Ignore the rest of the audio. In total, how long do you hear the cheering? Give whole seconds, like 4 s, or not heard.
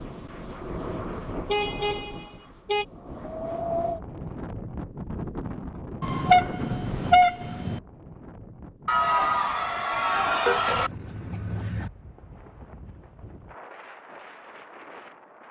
2 s.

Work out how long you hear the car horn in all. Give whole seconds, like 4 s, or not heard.
5 s.